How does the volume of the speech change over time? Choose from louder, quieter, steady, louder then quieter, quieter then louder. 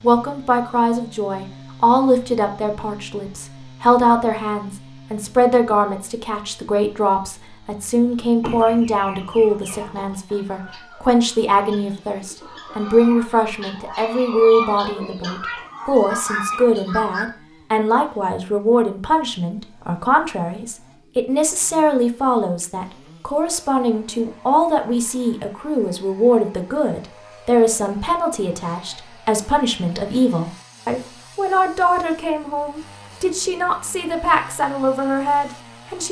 steady.